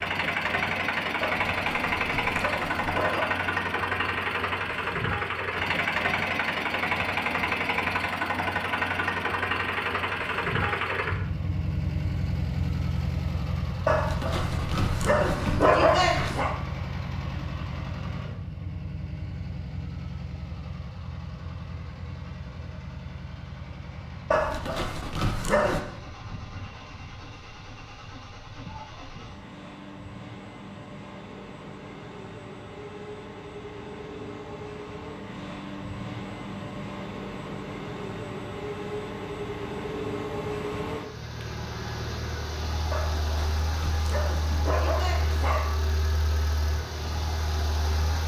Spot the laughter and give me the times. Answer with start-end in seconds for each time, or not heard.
not heard.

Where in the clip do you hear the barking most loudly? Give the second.
16 s.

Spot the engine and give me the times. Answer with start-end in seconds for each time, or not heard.
0.0-48.2.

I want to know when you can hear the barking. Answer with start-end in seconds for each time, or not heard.
1.2-3.2, 13.8-16.6, 24.3-25.9, 42.9-45.8.